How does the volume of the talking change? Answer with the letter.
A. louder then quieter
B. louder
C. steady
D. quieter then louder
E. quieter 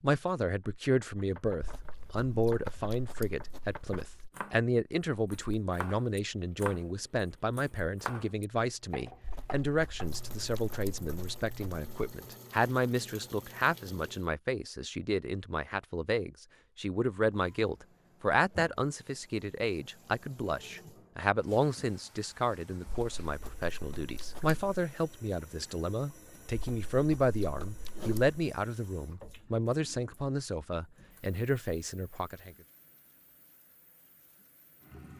C.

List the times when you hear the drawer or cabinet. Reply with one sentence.
You can't hear the drawer or cabinet here.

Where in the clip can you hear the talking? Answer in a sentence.
You can hear the talking from 0.0 to 32.5 s.